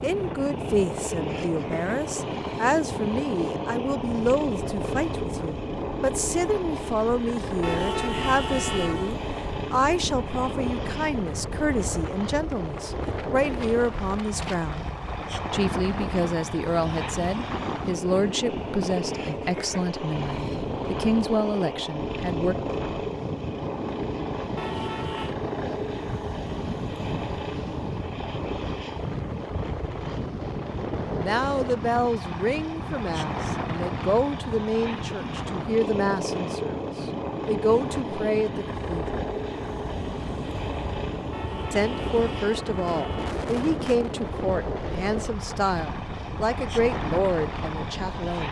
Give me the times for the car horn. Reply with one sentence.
You can hear the car horn from 7.6 to 9.2 s, from 24.6 to 25.4 s and from 41.3 to 43.4 s.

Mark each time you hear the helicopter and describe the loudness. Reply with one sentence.
You can hear the helicopter from 0.0 to 48.4 s, at a steady volume.